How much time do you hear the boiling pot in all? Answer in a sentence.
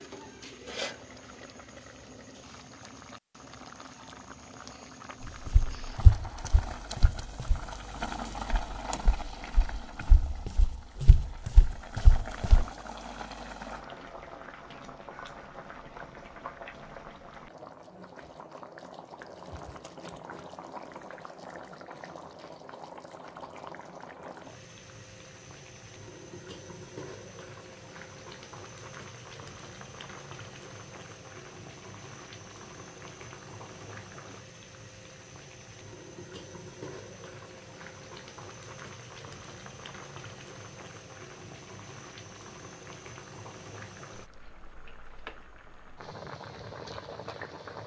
You can hear the boiling pot for 48 seconds altogether.